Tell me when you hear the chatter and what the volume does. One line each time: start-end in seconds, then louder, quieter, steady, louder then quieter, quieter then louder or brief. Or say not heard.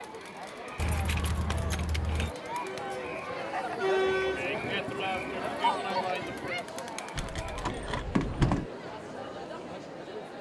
0.0-10.3 louder then quieter.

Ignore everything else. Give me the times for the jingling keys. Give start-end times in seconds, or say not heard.
0.8-2.4, 7.2-8.7.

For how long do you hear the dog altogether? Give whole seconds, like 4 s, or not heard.
not heard.